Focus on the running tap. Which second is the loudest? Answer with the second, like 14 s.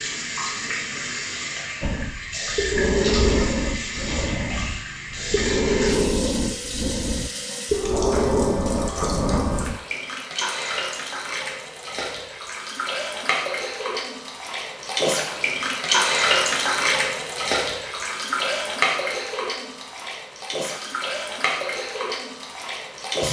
16 s.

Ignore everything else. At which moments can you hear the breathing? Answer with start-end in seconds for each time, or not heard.
1.8-9.8.